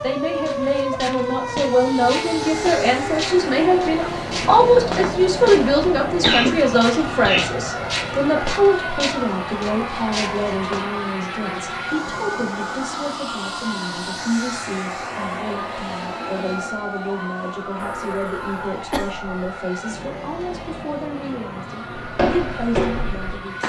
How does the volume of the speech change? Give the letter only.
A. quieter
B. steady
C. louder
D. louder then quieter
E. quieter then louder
A.